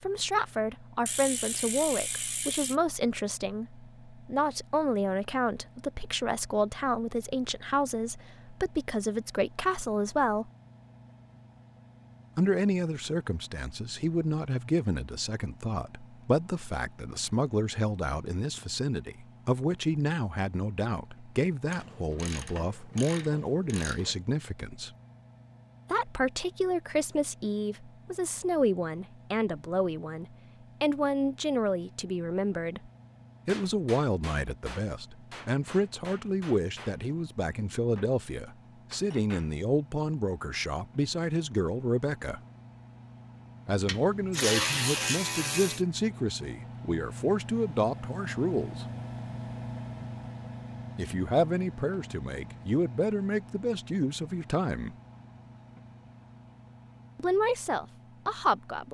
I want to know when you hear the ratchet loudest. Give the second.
45 s.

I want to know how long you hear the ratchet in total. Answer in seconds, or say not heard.
6 s.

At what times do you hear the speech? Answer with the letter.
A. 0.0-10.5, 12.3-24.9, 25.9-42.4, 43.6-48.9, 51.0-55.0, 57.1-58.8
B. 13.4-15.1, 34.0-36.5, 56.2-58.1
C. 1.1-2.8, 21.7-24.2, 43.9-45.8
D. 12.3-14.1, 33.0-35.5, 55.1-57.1
A.